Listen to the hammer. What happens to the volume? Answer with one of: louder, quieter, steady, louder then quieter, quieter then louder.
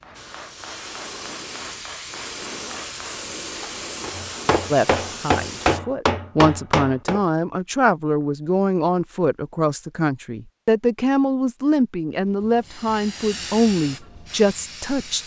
louder.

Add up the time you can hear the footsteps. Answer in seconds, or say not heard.
not heard.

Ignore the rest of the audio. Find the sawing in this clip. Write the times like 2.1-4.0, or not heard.
not heard.